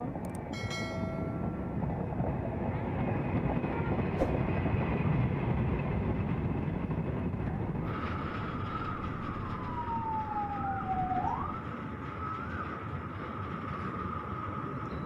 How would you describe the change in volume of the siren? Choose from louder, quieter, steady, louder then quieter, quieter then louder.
louder.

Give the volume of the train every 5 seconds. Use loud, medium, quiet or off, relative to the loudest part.
loud, loud, medium.